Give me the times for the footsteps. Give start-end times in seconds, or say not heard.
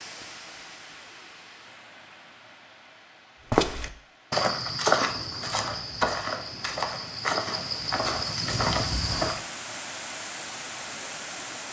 3.5-9.4.